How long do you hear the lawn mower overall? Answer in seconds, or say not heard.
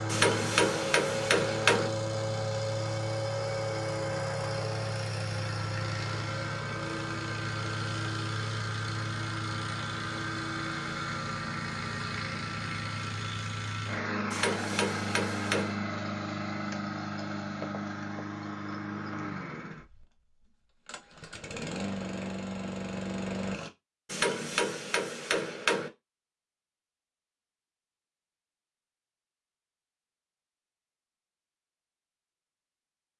24 s.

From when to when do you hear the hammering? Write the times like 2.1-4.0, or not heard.
0.1-1.9, 14.3-15.8, 24.1-25.9.